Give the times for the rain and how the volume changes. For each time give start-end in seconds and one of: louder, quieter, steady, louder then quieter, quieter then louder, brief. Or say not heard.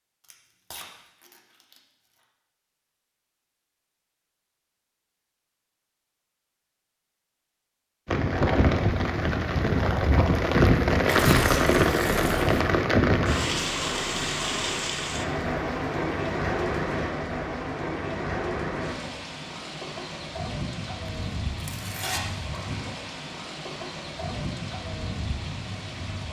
8.1-26.2 quieter.